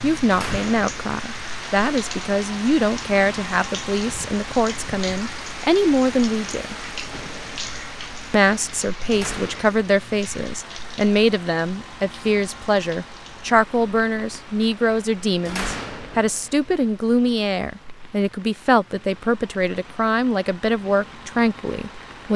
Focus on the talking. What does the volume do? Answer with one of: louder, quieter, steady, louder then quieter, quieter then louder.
steady.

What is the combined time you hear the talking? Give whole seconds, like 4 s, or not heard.
21 s.